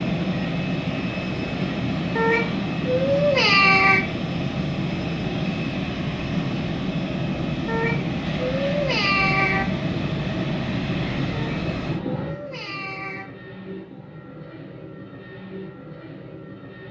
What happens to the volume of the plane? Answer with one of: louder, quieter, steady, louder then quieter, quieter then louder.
quieter.